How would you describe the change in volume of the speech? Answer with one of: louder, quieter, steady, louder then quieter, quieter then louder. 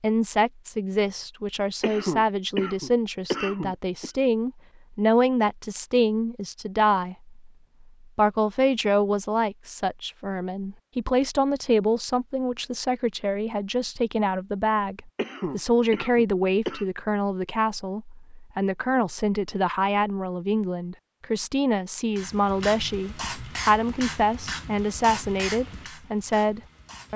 steady.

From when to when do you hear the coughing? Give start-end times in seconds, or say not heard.
1.8-4.1, 15.2-16.9.